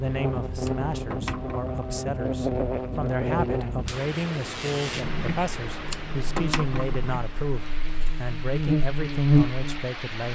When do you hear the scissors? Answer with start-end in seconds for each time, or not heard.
0.6-1.8, 5.8-7.0.